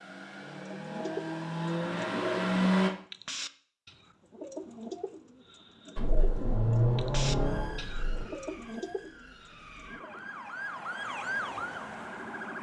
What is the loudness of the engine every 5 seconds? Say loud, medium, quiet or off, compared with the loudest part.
loud, loud, off.